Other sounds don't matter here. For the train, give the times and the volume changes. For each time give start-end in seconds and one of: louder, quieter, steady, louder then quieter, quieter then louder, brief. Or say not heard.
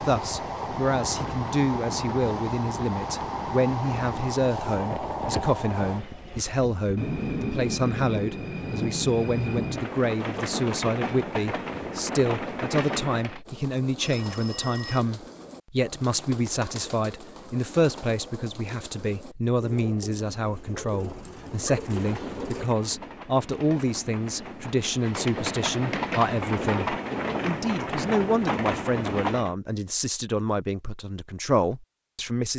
0.0-13.4 steady
21.8-29.6 louder.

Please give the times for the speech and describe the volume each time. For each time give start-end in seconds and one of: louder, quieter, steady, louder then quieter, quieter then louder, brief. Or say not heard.
0.0-32.5 steady.